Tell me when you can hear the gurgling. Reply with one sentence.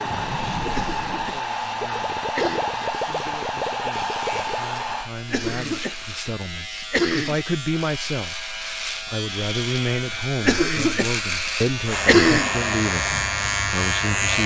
You can hear the gurgling from 0.0 to 5.0 s.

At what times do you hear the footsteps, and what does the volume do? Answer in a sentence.
The footsteps can't be heard in this clip.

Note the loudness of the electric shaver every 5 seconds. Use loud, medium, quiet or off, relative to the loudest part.
quiet, medium, loud.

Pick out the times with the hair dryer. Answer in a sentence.
You can hear the hair dryer from 0.0 to 5.1 s and from 11.8 to 14.4 s.